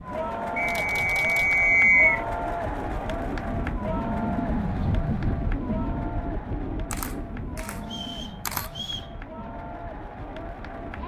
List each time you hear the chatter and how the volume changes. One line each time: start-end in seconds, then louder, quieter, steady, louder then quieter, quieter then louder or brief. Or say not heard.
0.0-11.0 quieter.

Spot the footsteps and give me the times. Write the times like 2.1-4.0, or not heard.
not heard.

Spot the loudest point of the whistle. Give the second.
2 s.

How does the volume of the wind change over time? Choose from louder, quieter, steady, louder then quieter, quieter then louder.
louder then quieter.